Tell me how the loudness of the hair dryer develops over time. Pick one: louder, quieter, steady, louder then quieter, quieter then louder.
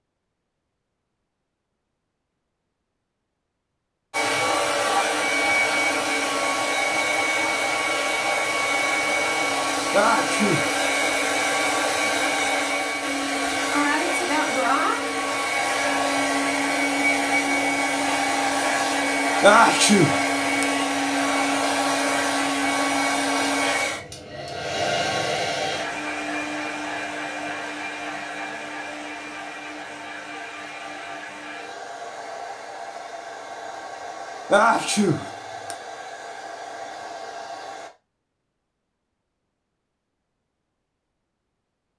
quieter.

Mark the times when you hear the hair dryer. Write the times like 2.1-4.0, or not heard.
4.1-37.9.